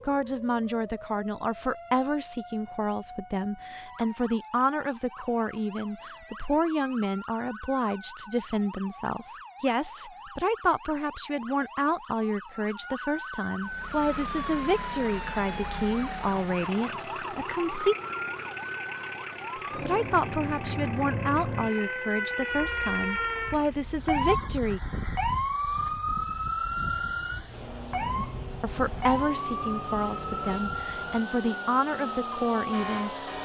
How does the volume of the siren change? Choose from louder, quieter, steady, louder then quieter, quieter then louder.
louder.